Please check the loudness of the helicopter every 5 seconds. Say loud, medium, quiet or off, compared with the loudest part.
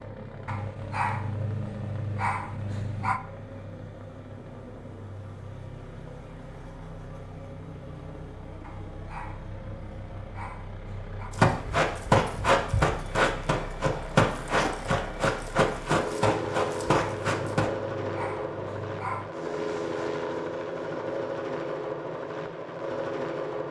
medium, medium, medium, loud, loud.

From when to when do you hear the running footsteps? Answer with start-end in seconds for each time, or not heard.
11.3-17.7.